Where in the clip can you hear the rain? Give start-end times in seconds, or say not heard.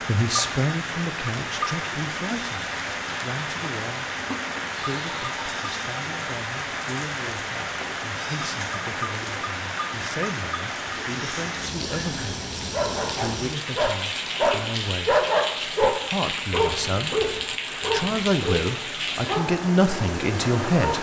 0.0-20.9.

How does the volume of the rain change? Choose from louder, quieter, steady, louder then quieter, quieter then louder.
steady.